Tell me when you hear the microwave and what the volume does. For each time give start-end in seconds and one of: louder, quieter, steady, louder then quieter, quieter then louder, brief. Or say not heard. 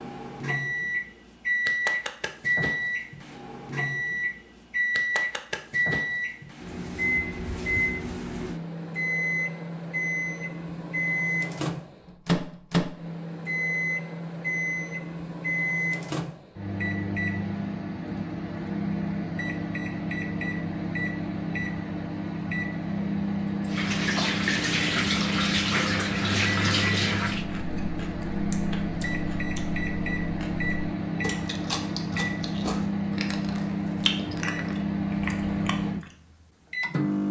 0.0-37.2 steady.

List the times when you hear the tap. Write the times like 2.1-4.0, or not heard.
23.6-27.4.